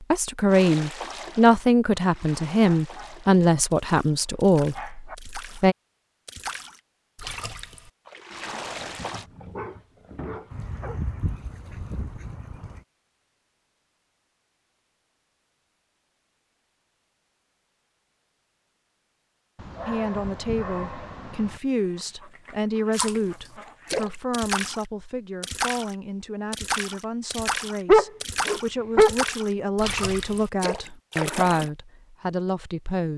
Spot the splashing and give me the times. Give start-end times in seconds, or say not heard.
0.5-9.2, 22.9-31.7.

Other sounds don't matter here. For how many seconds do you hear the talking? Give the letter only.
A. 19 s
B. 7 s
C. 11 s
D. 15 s
A.